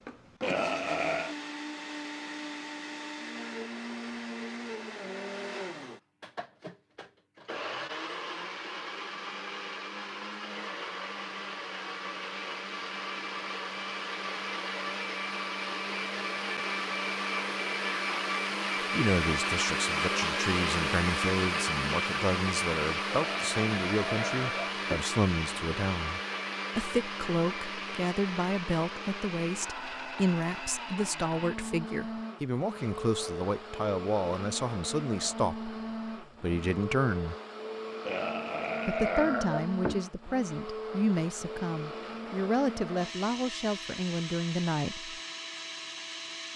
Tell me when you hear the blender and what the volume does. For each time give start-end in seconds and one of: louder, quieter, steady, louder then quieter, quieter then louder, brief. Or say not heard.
0.0-46.5 louder then quieter.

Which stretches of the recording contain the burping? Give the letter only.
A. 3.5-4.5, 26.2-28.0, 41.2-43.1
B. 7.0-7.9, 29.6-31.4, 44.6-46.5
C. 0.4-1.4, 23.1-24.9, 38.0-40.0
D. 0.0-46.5
C.